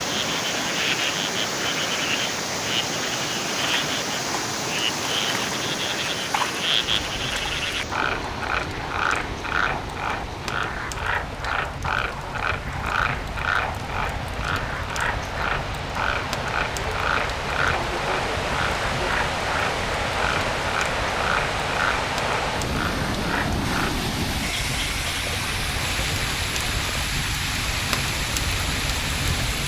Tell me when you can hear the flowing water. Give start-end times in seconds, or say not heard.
0.0-29.6.